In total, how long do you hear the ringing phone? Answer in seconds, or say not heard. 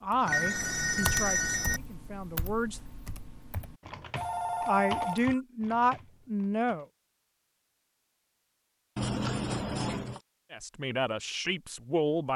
4 s.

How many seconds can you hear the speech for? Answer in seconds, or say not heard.
7 s.